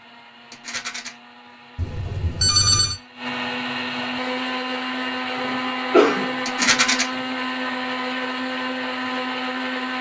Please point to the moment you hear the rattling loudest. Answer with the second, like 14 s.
7 s.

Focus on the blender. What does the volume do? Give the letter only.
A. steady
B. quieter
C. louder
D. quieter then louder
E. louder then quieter
C.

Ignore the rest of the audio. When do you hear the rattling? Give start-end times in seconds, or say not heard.
0.5-1.1, 6.5-7.0.